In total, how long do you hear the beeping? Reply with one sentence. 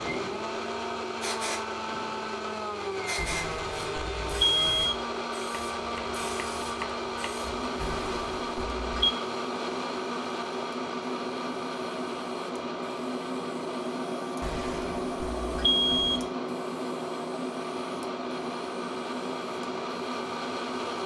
You can hear the beeping for 5 seconds altogether.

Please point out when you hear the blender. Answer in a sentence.
The blender can be heard from 0.0 to 21.0 s.